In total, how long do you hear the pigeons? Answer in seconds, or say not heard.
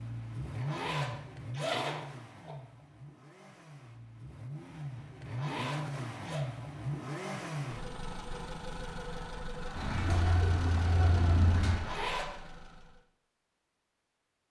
2 s.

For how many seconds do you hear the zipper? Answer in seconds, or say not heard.
4 s.